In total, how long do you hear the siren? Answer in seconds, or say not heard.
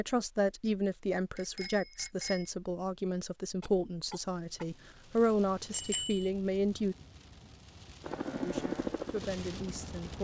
not heard.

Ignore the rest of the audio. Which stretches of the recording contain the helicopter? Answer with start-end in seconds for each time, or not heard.
8.0-10.1.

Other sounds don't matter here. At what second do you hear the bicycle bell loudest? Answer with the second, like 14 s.
6 s.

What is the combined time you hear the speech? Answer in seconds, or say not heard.
9 s.